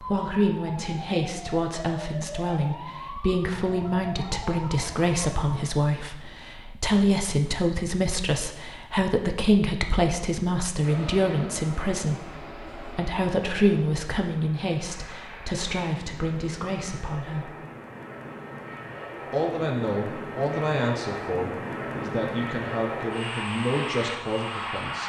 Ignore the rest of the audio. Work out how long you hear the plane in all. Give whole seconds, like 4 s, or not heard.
14 s.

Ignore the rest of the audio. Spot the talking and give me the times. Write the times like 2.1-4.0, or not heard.
0.0-17.5, 19.3-25.0.